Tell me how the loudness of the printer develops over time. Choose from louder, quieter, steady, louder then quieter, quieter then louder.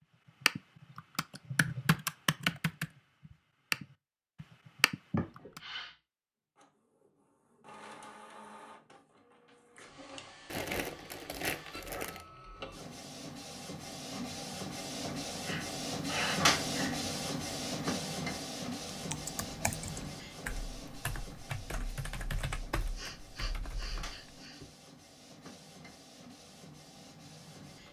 louder then quieter.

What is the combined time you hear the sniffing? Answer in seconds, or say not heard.
4 s.